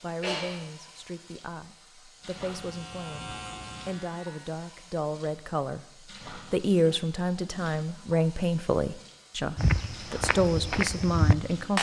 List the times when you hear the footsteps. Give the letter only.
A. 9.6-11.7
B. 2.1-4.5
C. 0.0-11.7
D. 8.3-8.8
A.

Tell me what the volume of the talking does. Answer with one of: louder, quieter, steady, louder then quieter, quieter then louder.
louder.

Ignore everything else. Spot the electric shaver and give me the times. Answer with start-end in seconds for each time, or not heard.
2.1-4.5.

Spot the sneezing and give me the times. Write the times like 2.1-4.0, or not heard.
0.2-0.7.